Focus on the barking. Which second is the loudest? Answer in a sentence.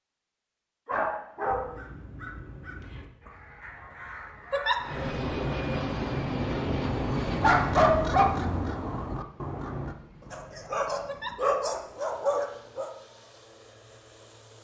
The loudest moment of the barking is at 8 seconds.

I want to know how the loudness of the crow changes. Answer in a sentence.
The volume of the crow goes up.